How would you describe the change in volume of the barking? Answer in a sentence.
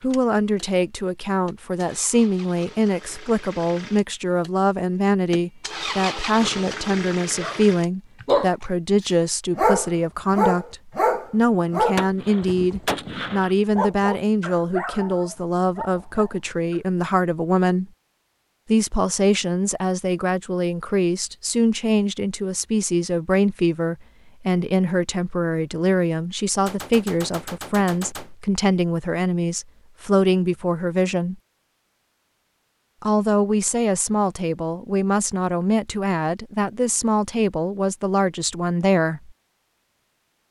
The loudness of the barking goes down.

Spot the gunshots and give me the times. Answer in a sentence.
You can hear the gunshots from 11.9 to 13.6 s and from 26.6 to 28.4 s.